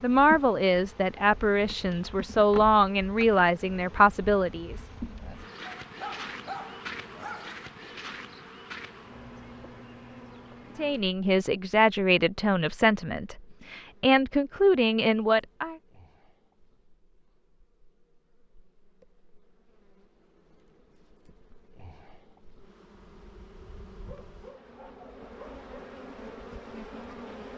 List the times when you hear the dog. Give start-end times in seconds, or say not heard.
5.7-7.7, 24.1-25.6.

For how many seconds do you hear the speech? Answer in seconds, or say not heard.
10 s.